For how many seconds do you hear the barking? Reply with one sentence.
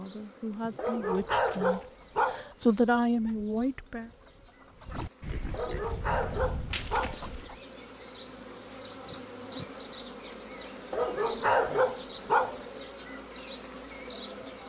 You can hear the barking for 5 seconds altogether.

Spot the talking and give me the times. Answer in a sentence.
You can hear the talking from 0.0 to 4.1 s.